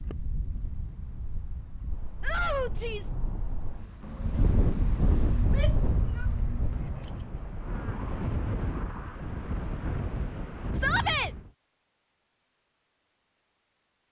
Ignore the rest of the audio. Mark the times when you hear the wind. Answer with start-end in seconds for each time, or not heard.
0.0-11.5.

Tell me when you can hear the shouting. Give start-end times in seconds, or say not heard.
2.2-3.1, 5.3-6.2, 10.7-11.3.